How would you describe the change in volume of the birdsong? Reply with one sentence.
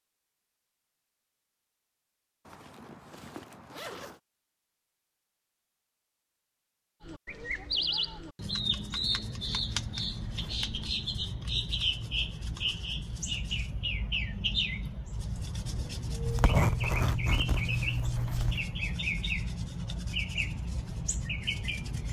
The volume of the birdsong stays about the same.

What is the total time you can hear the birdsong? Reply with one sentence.
The birdsong can be heard for 15 seconds in total.